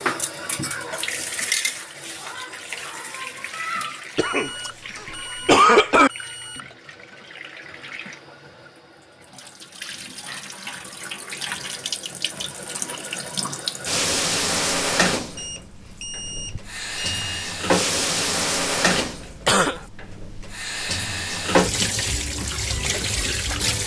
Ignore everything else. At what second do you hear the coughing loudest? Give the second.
6 s.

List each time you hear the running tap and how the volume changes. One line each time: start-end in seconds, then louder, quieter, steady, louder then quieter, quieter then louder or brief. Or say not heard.
0.0-23.8 quieter then louder.